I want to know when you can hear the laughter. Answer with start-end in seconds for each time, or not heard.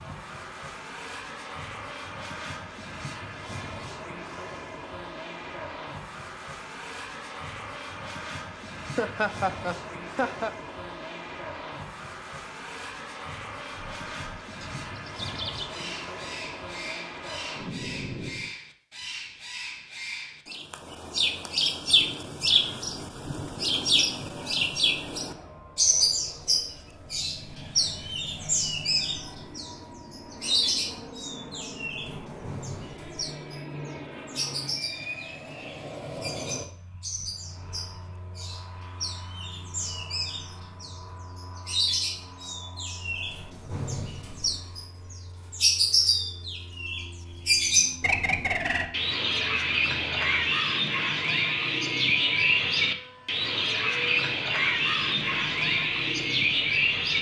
8.9-10.5.